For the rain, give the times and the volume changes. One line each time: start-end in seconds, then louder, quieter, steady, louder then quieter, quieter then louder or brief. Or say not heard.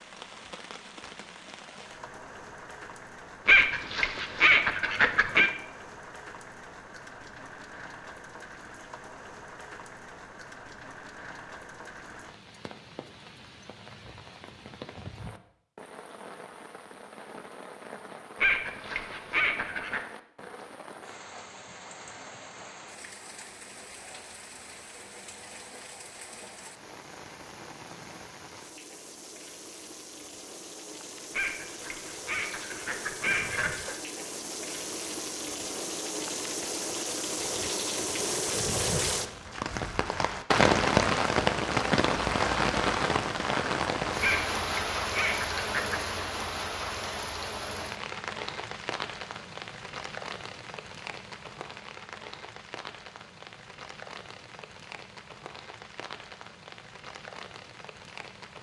0.0-58.5 louder then quieter.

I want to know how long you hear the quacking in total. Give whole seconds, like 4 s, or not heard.
8 s.